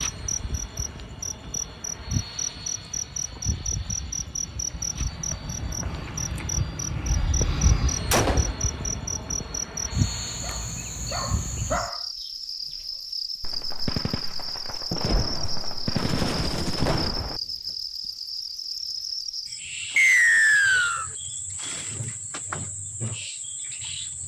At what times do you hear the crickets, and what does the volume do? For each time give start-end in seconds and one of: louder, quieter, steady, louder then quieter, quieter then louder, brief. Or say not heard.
0.0-24.2 steady.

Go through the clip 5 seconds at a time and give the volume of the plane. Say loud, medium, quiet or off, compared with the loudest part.
medium, loud, loud, off, off.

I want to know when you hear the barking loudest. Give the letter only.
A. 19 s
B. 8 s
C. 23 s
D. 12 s
D.